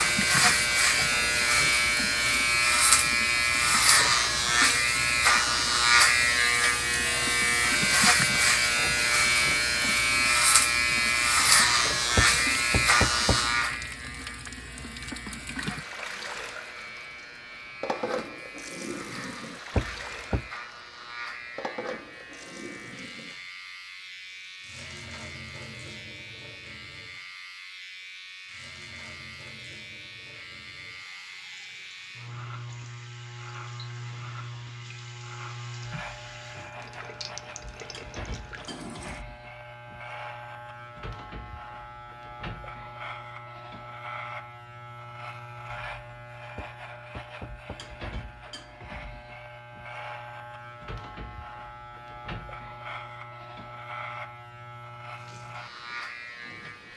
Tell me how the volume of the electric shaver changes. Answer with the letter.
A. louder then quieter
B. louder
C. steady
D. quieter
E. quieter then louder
D.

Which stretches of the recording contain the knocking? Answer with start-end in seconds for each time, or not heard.
12.2-13.5, 19.8-20.5, 46.5-47.9.